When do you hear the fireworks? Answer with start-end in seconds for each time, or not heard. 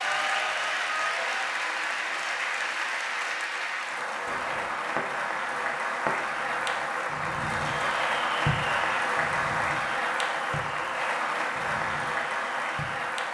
4.2-13.2.